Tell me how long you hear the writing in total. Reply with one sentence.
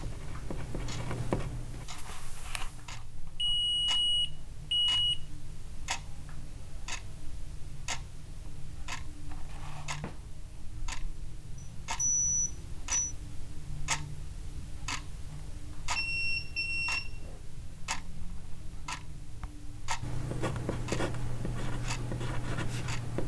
You can hear the writing for 5 seconds altogether.